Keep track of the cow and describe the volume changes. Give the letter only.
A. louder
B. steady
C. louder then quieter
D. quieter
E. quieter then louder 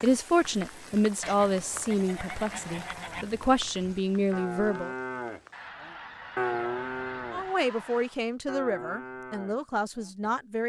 C.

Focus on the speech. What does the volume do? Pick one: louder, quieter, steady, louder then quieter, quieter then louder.
quieter.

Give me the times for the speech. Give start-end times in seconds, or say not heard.
0.0-4.9, 7.3-10.6.